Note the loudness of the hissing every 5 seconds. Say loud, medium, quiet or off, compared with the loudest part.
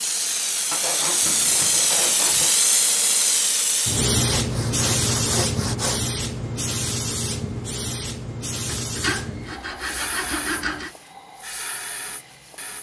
loud, medium, quiet.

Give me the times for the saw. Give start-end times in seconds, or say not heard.
0.7-2.5, 4.2-6.0, 8.7-10.9.